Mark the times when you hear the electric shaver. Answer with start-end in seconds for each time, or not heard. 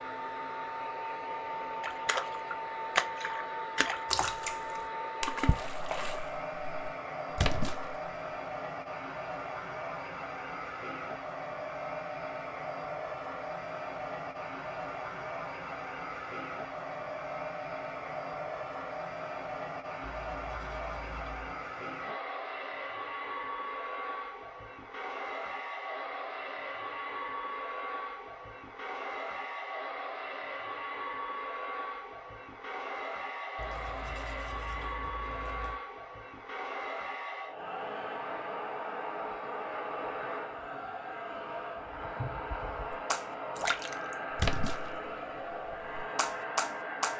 not heard.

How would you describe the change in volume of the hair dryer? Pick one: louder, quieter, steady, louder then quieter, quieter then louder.
steady.